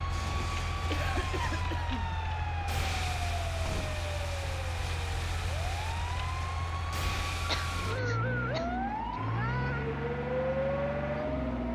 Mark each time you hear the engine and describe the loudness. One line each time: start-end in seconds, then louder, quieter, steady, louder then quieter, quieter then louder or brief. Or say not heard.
0.0-11.7 louder.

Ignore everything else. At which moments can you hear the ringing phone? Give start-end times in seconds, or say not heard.
not heard.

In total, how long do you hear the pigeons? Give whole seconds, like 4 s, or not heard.
not heard.